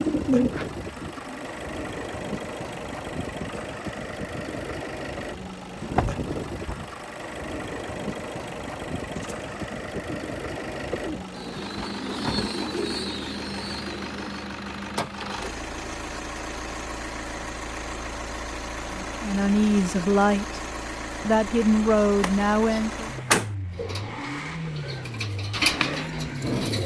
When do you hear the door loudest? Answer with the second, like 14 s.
23 s.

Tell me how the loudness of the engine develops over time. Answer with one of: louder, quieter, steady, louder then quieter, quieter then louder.
steady.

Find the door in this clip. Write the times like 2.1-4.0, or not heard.
5.5-6.9, 22.2-23.5.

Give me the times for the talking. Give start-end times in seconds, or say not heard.
18.9-20.6, 21.2-23.1.